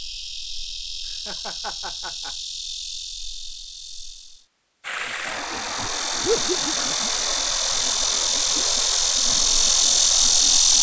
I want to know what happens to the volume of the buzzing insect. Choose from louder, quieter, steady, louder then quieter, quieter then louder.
louder.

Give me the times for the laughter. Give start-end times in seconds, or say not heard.
1.1-2.4, 6.2-7.1.